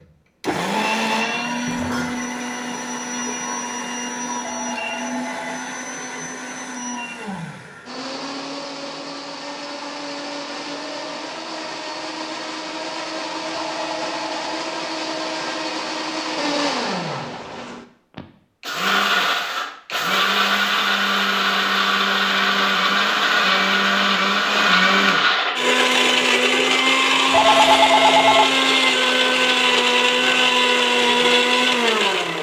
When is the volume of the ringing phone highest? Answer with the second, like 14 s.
28 s.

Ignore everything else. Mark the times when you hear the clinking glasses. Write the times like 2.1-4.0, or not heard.
1.6-2.2.